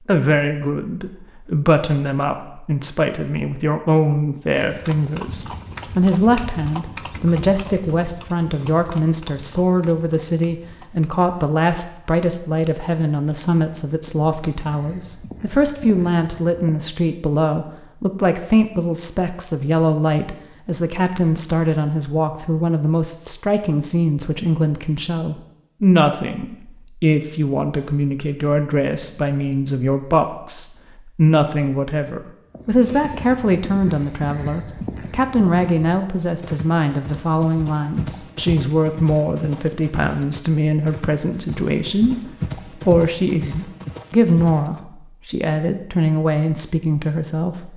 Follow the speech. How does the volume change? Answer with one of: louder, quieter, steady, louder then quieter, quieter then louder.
steady.